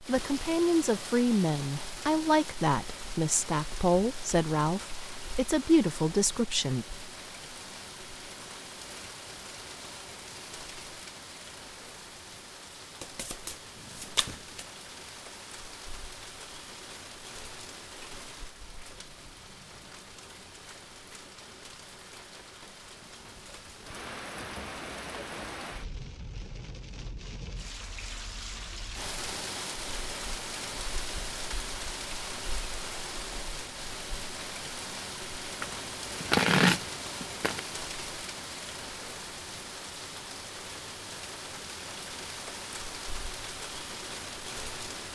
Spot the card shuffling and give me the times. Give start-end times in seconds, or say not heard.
13.0-14.7, 35.6-37.6.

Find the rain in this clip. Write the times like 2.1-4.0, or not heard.
0.0-45.1.